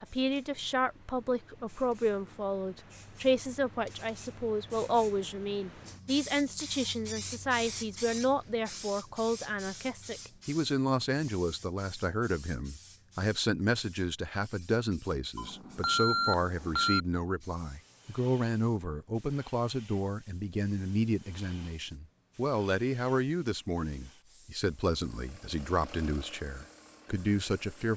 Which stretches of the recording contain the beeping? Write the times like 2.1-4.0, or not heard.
15.3-17.0.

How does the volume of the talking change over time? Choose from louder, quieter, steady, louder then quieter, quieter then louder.
steady.